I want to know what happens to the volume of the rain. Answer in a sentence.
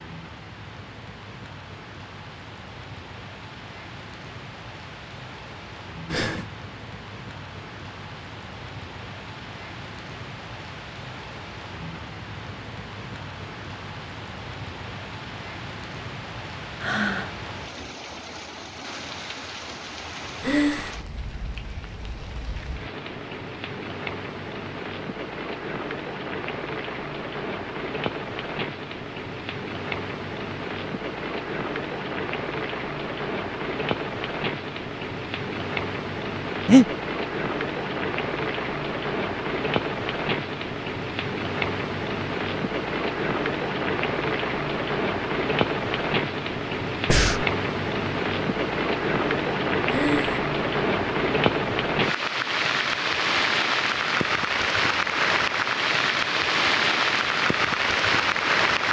The loudness of the rain goes up.